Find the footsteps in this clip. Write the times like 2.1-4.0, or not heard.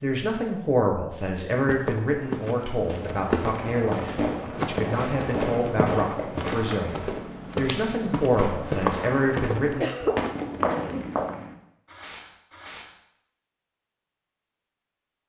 1.6-11.4.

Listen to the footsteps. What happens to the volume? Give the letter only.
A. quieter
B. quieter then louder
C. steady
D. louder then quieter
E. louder
C.